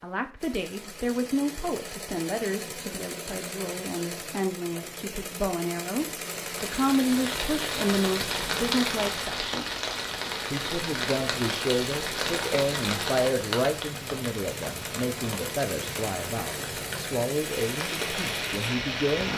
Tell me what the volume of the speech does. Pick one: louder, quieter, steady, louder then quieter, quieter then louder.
steady.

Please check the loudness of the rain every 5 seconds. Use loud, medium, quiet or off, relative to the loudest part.
off, loud, loud, loud.